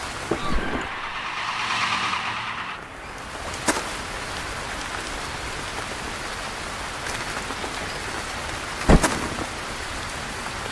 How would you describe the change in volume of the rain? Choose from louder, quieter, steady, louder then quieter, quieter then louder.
louder.